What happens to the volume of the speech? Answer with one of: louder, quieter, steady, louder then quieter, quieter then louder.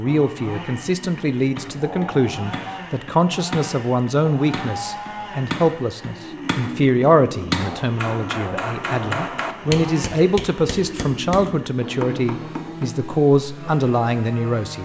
steady.